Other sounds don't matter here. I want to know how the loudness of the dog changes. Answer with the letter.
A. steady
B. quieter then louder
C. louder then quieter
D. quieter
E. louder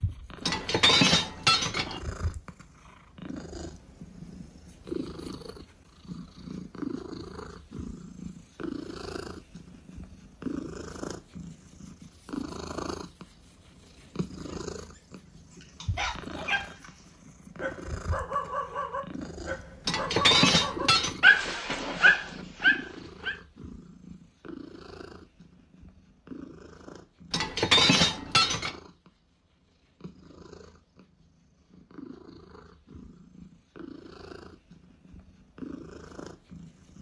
E.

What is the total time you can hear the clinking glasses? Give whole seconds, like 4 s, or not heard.
4 s.